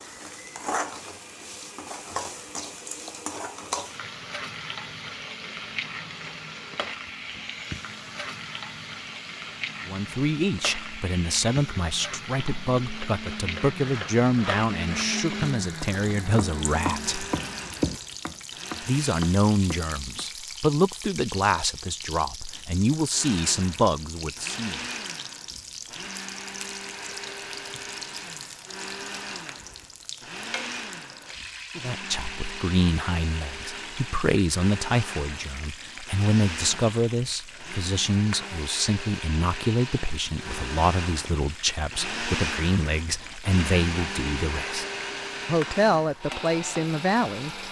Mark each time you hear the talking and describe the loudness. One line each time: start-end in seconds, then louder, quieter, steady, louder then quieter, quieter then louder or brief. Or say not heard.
9.8-17.2 steady
18.8-24.8 steady
31.8-44.9 steady
45.5-47.6 brief.